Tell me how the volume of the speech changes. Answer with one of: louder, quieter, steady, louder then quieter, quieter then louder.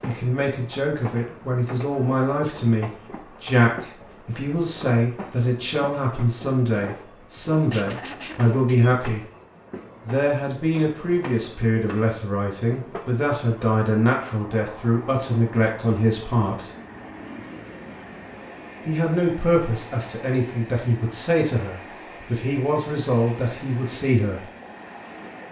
steady.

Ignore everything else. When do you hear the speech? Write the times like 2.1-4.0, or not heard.
0.0-9.2, 10.1-16.7, 18.9-24.4.